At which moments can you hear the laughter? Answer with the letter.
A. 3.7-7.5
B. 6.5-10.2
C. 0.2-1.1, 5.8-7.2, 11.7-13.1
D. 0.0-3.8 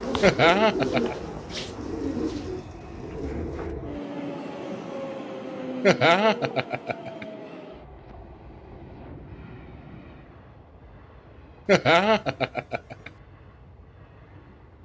C.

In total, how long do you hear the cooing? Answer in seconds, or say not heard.
4 s.